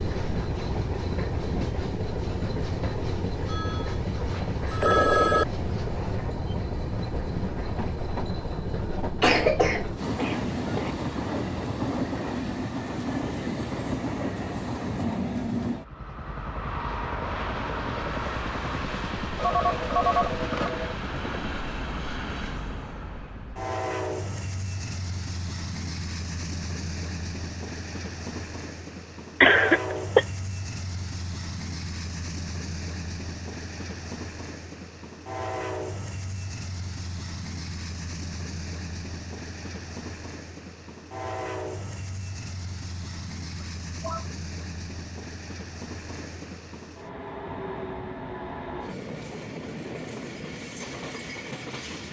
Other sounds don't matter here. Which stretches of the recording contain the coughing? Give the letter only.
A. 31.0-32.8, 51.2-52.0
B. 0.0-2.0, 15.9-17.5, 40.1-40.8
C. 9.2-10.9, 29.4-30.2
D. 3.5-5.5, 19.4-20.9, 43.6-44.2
C.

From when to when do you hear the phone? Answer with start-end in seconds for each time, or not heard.
3.5-5.5, 19.4-20.9, 43.6-44.2.